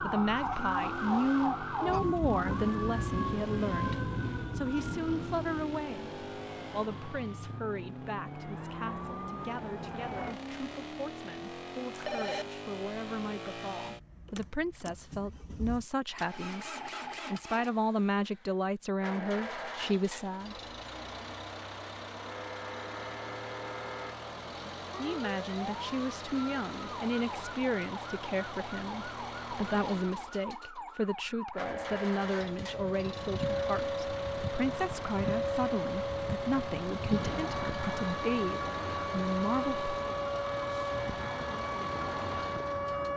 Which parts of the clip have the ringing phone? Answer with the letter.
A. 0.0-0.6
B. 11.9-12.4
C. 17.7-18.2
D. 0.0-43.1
B.